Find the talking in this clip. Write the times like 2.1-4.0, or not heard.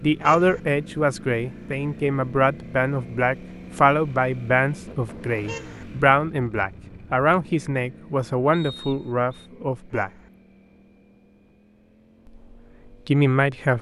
0.0-10.1, 13.1-13.7.